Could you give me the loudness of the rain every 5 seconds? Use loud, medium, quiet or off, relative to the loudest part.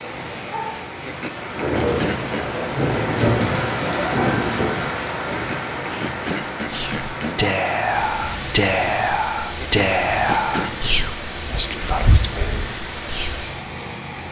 loud, medium, medium.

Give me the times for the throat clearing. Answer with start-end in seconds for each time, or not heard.
1.0-2.5, 5.3-7.4, 9.6-10.7.